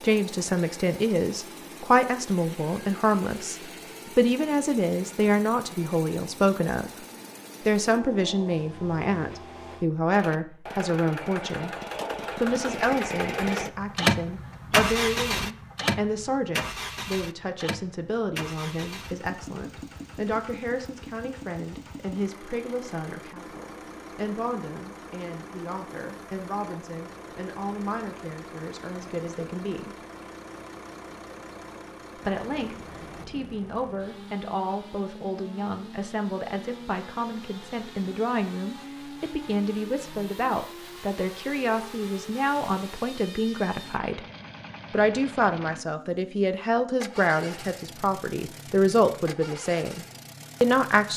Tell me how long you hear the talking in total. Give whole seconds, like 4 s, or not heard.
47 s.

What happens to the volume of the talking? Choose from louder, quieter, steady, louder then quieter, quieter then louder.
quieter then louder.